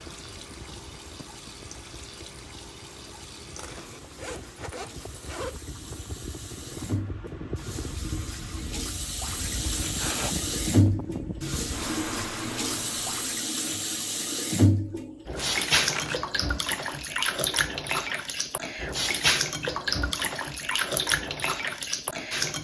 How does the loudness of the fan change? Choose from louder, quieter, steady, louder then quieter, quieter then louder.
louder.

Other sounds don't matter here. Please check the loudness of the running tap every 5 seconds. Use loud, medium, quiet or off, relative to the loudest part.
quiet, medium, loud, loud, loud.